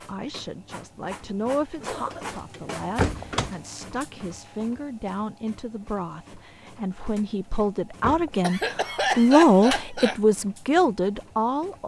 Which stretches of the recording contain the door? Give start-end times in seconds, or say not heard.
2.5-3.5, 7.6-8.3.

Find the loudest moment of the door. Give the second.
3 s.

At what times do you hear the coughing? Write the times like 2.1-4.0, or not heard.
1.8-2.4, 8.4-10.2.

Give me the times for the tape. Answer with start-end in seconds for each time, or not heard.
not heard.